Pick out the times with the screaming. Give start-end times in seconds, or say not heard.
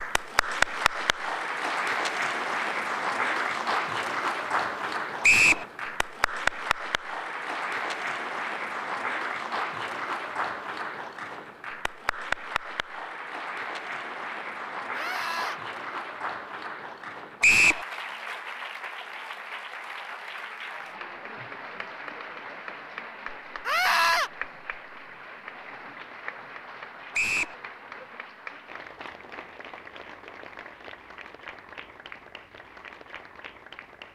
14.9-15.6, 23.6-24.3.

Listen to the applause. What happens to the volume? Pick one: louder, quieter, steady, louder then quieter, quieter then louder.
quieter.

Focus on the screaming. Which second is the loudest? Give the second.
24 s.